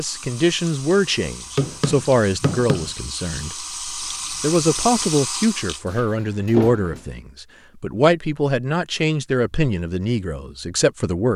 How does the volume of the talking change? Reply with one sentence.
The volume of the talking stays about the same.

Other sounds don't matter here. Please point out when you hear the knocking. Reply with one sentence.
You can hear the knocking from 1.6 to 2.9 s.